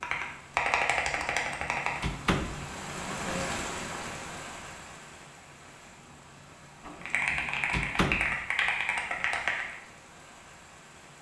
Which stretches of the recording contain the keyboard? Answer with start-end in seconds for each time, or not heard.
0.0-2.0, 7.0-9.8.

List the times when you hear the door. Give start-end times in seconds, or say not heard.
1.1-2.7, 6.8-8.4.